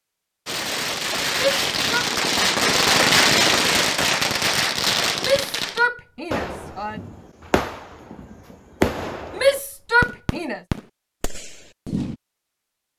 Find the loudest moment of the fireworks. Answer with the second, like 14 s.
3 s.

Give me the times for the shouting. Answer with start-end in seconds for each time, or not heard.
1.4-2.0, 5.2-7.0, 9.3-10.6.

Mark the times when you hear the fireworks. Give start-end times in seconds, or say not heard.
0.5-12.2.